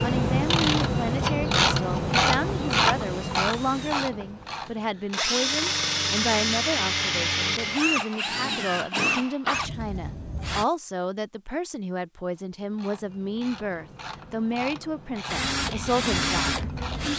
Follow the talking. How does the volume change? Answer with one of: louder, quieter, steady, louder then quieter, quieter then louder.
steady.